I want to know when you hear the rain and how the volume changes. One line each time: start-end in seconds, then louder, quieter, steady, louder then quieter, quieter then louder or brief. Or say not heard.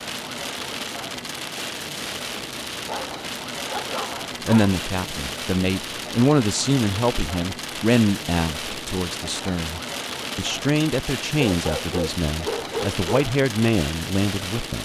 0.0-14.8 steady.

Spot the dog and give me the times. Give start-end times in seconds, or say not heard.
2.9-4.8, 11.3-13.2.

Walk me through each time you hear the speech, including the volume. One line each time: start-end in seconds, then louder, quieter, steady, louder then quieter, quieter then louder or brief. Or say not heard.
4.5-14.8 quieter then louder.